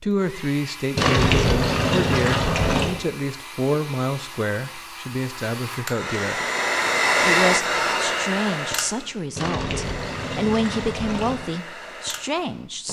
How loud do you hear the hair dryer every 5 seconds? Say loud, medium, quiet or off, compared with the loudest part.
quiet, loud, quiet.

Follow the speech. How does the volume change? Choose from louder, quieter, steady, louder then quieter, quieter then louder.
steady.